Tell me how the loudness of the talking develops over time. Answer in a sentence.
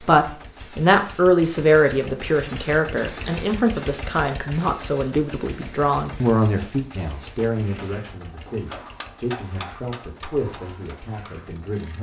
The loudness of the talking goes down.